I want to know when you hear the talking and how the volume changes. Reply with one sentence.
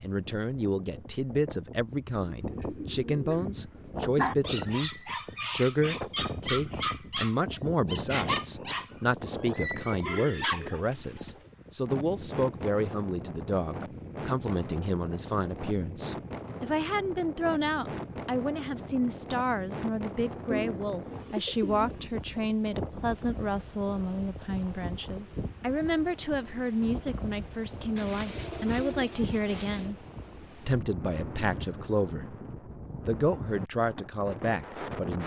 You can hear the talking from 0.0 to 29.9 s, at a steady volume; briefly from 30.6 to 32.4 s; and briefly from 33.0 to 35.2 s.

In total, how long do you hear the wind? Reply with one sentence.
The wind can be heard for 35 seconds in total.